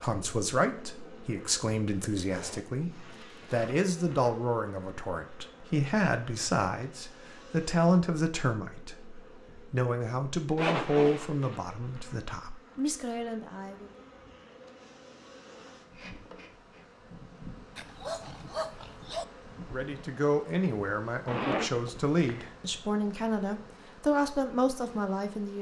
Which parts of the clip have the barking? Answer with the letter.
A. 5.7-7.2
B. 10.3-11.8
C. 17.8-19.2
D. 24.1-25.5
C.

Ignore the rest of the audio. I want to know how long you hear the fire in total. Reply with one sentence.
You can't hear the fire here.